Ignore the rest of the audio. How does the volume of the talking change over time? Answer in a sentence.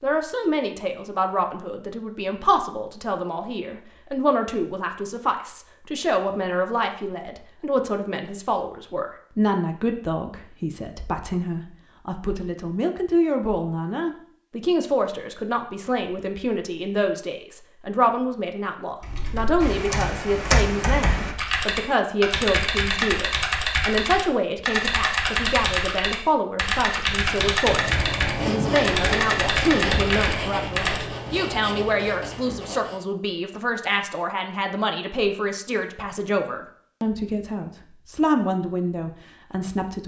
The volume of the talking stays about the same.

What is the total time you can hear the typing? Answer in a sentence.
The typing can be heard for 12 seconds in total.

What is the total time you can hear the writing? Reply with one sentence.
The writing can be heard for 6 seconds in total.